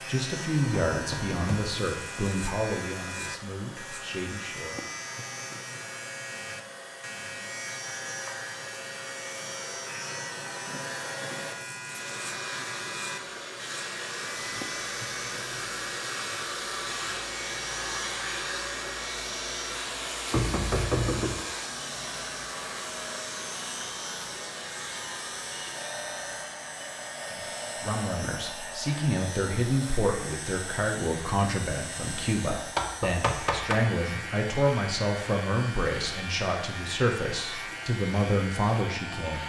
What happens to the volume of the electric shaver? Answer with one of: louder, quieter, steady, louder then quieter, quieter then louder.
steady.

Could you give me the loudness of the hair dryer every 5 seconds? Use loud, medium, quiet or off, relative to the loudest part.
medium, medium, loud, loud, loud, medium, medium, medium.